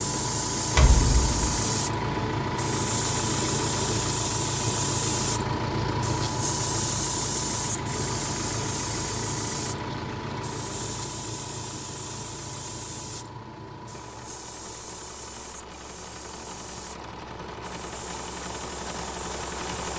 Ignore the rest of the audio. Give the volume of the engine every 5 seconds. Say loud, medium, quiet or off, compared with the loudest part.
loud, loud, medium, medium.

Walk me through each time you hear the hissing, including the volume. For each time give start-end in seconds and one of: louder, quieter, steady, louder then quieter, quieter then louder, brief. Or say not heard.
0.0-19.9 quieter.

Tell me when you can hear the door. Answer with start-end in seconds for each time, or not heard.
0.7-1.6.